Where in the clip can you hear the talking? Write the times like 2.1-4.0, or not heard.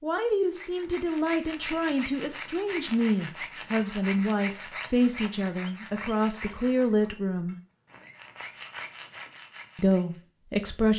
0.0-7.5, 9.8-10.9.